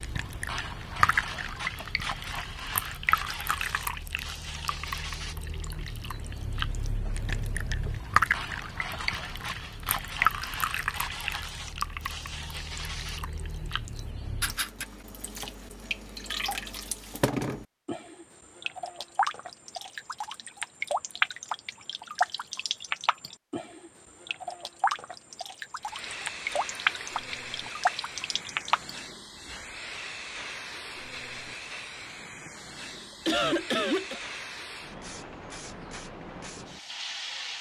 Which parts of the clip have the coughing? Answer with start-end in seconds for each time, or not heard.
32.5-34.2.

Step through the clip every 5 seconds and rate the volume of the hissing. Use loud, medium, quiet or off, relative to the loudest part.
loud, loud, loud, off, off, loud, loud, loud.